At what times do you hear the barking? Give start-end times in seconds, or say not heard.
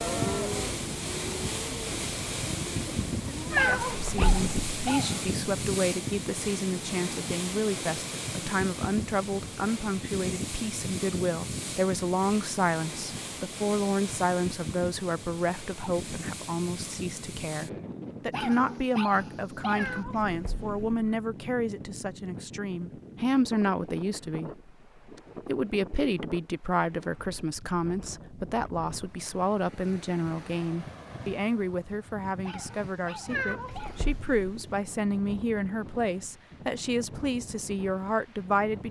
3.5-5.2, 18.3-20.1, 32.5-34.1.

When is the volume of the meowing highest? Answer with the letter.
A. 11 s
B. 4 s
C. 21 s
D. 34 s
B.